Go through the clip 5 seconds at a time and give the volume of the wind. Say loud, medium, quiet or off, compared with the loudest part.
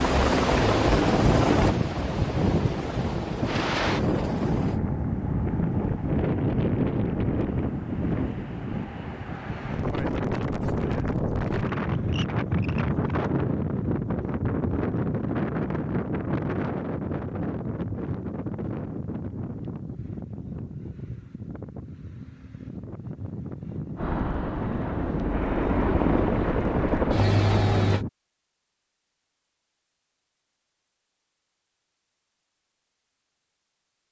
loud, loud, loud, loud, medium, loud, off.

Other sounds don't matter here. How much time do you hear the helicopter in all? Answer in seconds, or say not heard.
9 s.